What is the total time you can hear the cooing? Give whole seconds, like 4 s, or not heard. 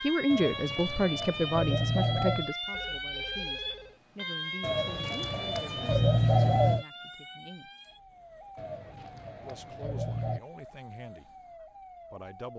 6 s.